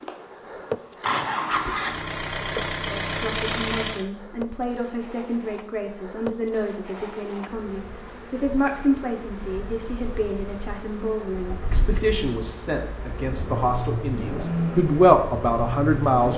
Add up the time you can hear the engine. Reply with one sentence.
You can hear the engine for 9 seconds altogether.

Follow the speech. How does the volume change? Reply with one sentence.
The volume of the speech goes up.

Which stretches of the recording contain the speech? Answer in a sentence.
The speech can be heard from 2.9 to 16.3 s.